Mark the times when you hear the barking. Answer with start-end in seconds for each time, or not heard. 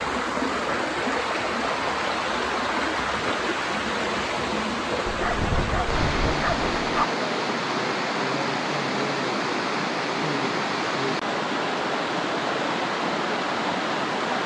5.0-7.0.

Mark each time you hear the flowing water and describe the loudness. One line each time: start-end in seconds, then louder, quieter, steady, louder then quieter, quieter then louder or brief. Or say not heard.
0.0-14.4 steady.